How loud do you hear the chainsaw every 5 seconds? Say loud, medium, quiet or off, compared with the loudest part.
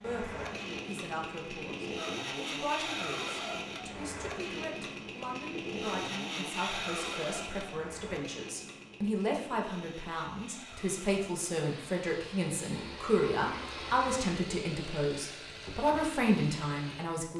loud, loud, medium, medium.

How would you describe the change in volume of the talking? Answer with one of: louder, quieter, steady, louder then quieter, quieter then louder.
louder.